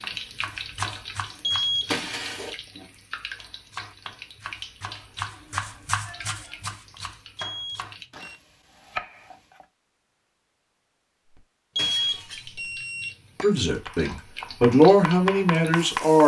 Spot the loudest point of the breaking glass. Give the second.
2 s.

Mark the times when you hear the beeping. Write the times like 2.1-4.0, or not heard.
1.4-2.1, 7.3-8.3, 11.8-13.5.